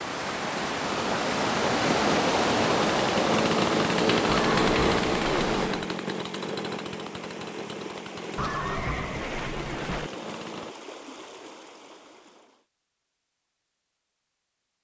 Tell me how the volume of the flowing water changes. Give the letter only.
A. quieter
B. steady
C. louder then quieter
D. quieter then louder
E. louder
A.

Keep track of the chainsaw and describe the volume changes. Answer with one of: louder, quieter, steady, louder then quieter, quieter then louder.
louder then quieter.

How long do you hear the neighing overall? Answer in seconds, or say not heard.
3 s.